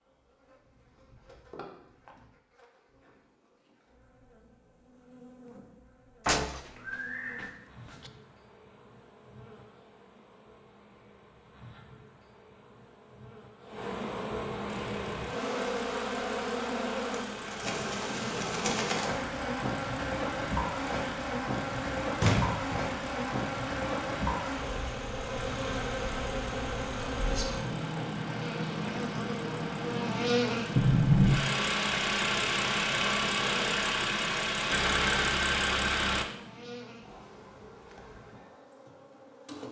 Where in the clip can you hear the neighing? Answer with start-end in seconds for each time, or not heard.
6.7-7.5.